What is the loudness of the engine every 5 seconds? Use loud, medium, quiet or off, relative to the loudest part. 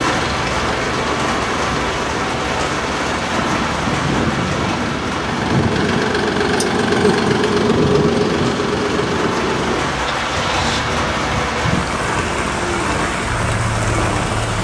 medium, loud, medium.